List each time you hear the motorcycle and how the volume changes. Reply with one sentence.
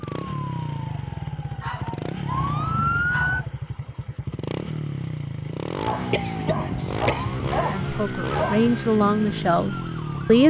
The motorcycle can be heard from 0.0 to 10.4 s, at a steady volume.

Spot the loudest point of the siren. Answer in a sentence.
The volume of the siren peaks at 3 seconds.